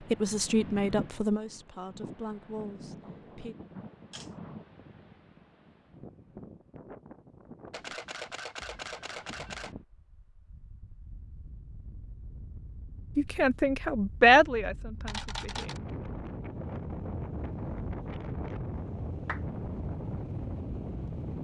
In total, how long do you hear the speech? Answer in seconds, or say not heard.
6 s.